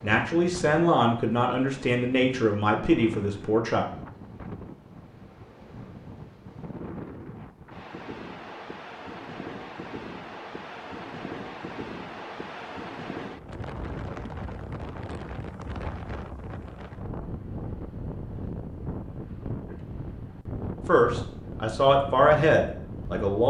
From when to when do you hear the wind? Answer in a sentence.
The wind can be heard from 0.0 to 23.4 s.